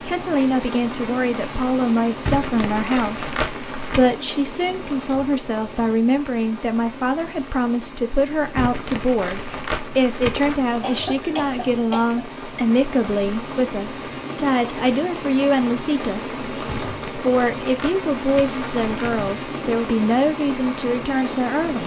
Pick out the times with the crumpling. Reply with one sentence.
The crumpling can be heard from 2.2 to 4.2 s, from 8.6 to 10.6 s and from 16.6 to 19.4 s.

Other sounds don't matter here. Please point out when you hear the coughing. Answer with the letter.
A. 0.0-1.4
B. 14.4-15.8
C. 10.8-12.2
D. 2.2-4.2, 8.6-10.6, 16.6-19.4
C.